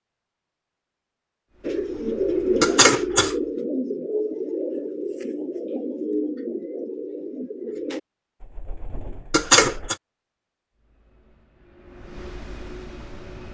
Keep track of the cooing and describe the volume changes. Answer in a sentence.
The volume of the cooing goes down.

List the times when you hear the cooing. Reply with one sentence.
The cooing can be heard from 1.6 to 9.9 s.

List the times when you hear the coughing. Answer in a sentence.
You can hear the coughing from 2.6 to 3.4 s and from 9.3 to 9.9 s.